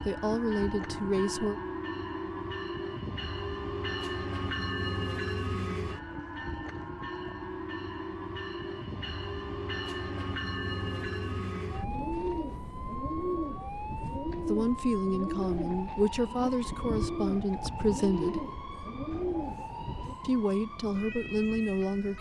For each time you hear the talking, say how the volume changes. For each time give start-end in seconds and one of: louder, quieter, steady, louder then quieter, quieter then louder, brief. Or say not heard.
0.0-1.6 brief
14.4-18.4 steady
20.2-22.1 brief.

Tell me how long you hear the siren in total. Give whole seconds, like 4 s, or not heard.
22 s.